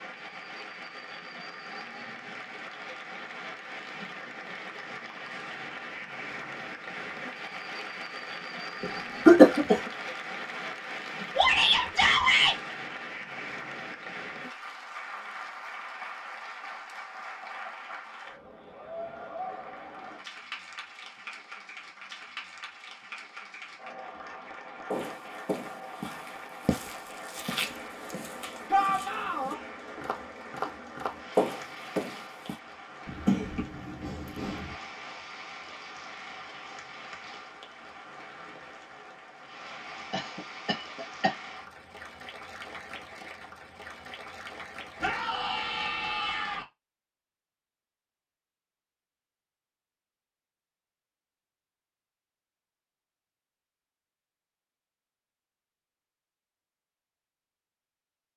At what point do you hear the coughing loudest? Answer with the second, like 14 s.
9 s.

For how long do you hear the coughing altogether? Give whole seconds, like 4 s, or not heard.
4 s.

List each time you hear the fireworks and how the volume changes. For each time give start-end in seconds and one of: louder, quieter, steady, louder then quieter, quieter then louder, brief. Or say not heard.
not heard.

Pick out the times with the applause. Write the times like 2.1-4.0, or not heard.
0.0-46.6.